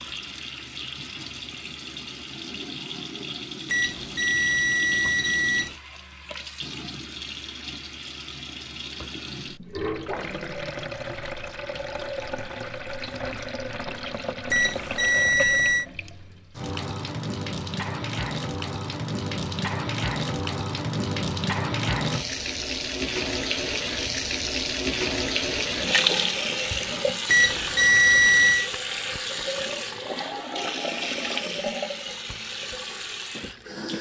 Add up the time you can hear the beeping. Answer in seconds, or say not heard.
5 s.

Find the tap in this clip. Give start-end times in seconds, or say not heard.
0.0-33.9.